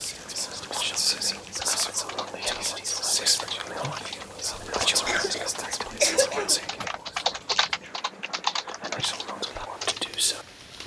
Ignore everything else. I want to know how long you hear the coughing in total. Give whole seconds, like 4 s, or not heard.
2 s.